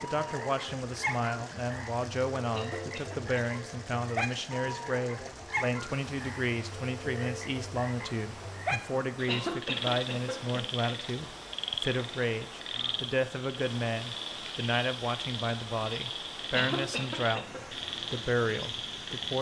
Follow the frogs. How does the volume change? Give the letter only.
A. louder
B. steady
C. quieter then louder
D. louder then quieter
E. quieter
B.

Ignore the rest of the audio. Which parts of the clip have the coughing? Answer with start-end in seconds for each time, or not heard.
2.5-3.4, 9.2-10.6, 16.5-17.6.